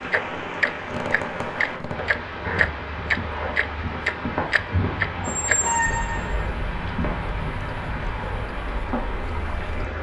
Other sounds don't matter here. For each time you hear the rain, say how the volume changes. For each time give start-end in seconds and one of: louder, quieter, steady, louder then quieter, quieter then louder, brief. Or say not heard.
0.0-9.9 steady.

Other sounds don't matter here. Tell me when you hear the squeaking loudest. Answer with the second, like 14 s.
6 s.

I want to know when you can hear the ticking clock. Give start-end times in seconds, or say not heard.
0.1-9.8.